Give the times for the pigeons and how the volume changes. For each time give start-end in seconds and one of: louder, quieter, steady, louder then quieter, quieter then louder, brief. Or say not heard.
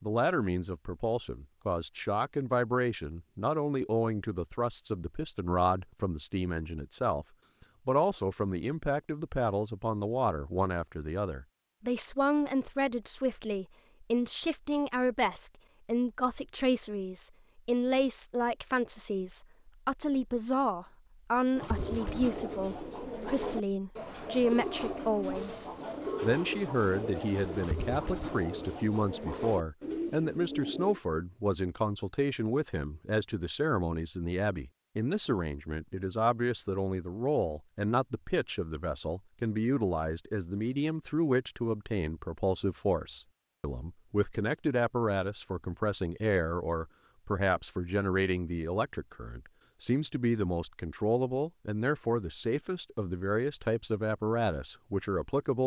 21.6-31.0 steady.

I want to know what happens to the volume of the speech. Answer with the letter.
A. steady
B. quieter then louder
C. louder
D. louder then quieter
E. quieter
A.